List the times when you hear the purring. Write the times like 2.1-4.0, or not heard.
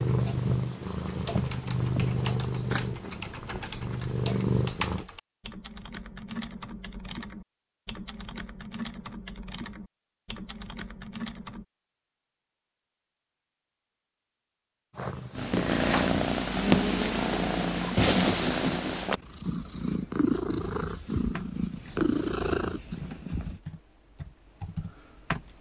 0.0-5.0, 14.9-23.6.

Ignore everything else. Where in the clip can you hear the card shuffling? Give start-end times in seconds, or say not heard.
2.6-4.0.